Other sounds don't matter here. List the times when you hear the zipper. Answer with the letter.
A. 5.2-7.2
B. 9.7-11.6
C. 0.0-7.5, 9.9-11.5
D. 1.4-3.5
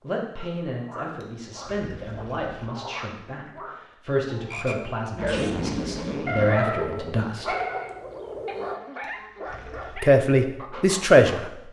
A.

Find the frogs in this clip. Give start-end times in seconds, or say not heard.
0.0-8.8.